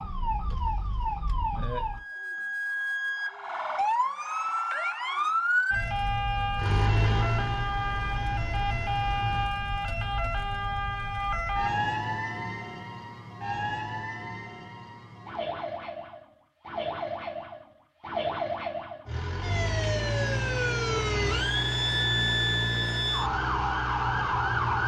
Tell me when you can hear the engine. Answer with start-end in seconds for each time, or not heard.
6.5-9.6, 19.1-24.8.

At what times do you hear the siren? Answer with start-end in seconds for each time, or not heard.
0.0-24.8.